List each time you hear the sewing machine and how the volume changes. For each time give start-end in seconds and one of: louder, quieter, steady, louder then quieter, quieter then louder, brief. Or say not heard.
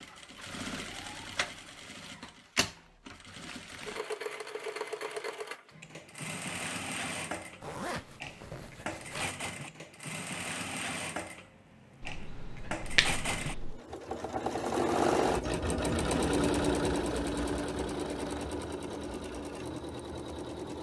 0.0-20.7 louder.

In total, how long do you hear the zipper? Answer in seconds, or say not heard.
2 s.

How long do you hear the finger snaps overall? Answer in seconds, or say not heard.
2 s.